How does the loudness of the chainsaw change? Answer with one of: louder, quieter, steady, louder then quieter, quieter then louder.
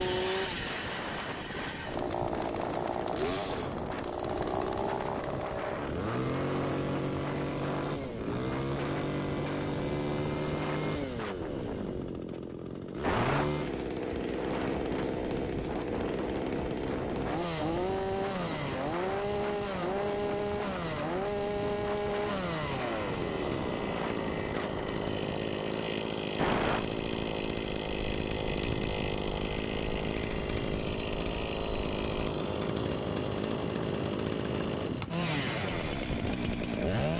steady.